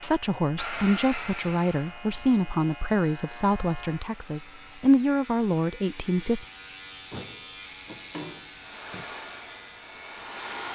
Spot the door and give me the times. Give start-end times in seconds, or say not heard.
7.1-9.1.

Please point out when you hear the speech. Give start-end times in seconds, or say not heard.
0.0-6.5.